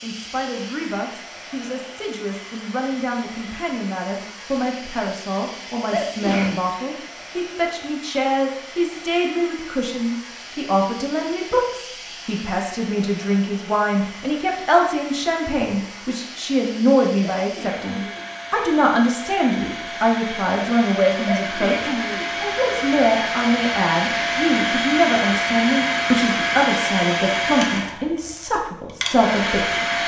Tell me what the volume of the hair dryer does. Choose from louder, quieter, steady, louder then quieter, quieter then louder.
louder.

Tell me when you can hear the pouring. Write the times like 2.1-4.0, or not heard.
not heard.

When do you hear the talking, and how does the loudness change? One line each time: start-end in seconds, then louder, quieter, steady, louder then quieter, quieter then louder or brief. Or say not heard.
0.0-30.0 louder.